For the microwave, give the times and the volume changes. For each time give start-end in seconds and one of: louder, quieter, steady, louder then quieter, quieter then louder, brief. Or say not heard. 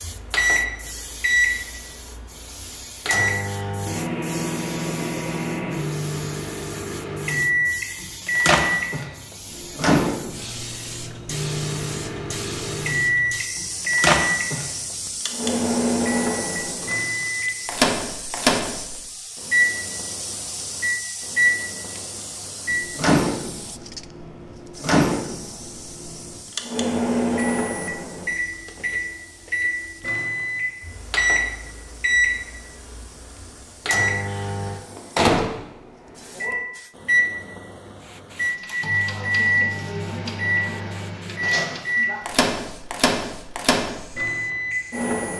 0.0-45.3 steady.